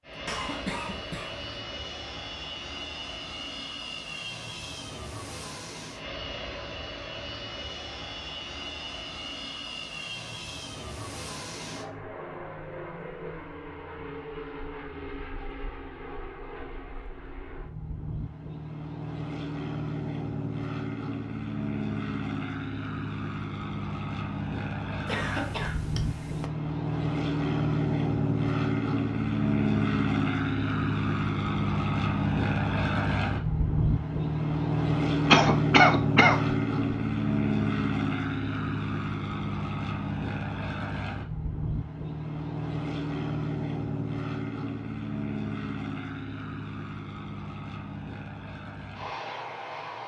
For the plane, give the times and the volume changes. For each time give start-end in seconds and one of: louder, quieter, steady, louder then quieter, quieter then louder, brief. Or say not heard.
0.0-50.0 louder then quieter.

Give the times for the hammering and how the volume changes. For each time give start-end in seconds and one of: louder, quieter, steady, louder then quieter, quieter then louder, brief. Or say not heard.
not heard.